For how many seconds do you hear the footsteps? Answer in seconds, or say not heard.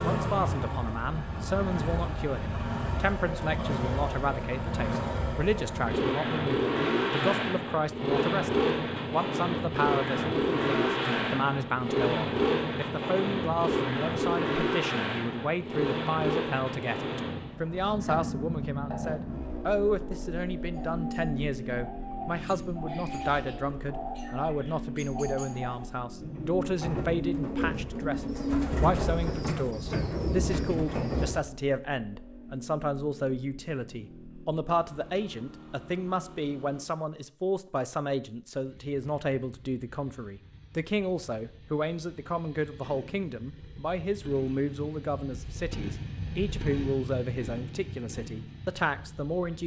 not heard.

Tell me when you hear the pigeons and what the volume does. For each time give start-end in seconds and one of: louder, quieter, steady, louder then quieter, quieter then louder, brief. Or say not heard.
20.7-31.4 louder.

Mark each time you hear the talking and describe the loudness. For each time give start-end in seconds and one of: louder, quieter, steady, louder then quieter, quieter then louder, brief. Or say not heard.
0.0-49.6 steady.